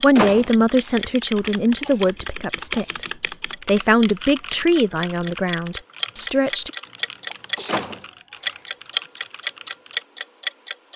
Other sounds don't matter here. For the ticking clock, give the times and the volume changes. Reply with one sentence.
You can hear the ticking clock from 0.0 to 7.8 s, getting louder; and briefly from 8.4 to 10.9 s.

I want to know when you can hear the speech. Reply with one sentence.
The speech can be heard from 0.0 to 6.7 s.